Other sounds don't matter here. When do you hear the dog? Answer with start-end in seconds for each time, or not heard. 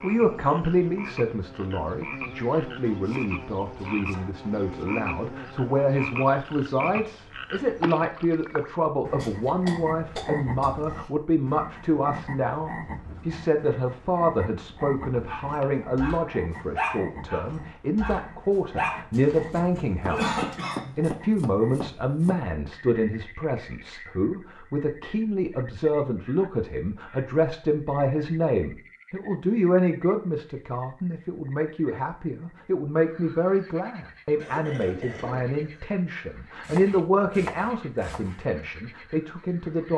15.2-20.4.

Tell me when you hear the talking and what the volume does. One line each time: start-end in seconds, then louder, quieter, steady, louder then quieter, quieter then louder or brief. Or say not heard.
0.0-39.9 steady.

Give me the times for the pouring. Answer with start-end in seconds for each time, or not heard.
not heard.